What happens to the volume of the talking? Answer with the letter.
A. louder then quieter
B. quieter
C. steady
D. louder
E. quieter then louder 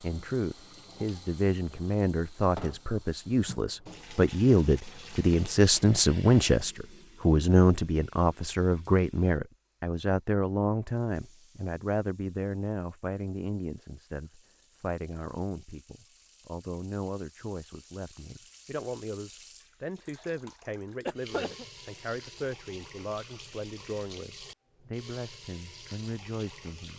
B.